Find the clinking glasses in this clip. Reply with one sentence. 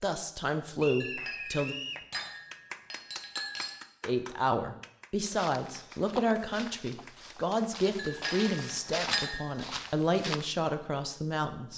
You can hear the clinking glasses from 1.0 to 3.7 s and from 8.0 to 9.4 s.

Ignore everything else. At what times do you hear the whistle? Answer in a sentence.
The whistle can be heard from 0.8 to 2.0 s.